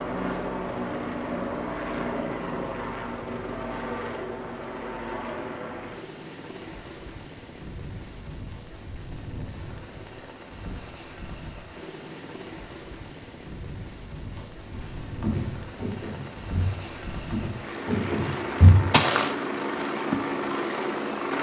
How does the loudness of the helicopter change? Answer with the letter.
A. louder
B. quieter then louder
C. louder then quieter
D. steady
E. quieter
B.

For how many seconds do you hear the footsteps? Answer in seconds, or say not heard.
5 s.